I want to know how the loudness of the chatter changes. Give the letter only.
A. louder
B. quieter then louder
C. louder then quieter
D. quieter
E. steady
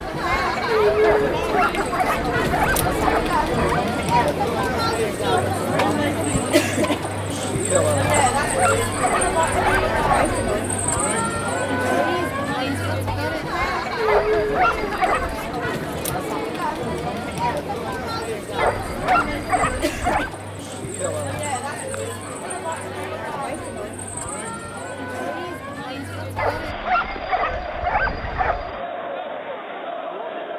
D.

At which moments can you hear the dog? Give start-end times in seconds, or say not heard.
1.1-3.8, 8.1-10.6, 14.1-15.6, 18.6-20.3, 26.4-28.8.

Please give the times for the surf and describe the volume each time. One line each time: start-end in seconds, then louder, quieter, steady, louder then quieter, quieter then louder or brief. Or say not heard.
not heard.